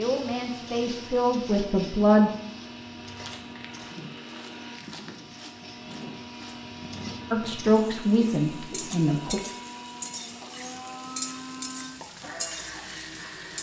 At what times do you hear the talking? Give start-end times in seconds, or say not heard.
0.0-2.3, 7.3-9.4.